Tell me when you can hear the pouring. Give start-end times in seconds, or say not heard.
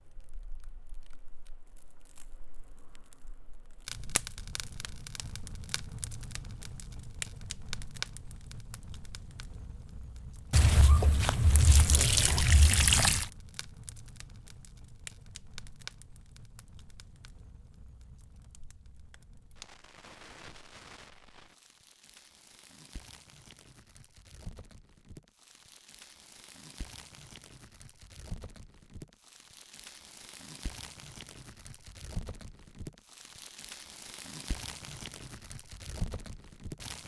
10.5-13.3.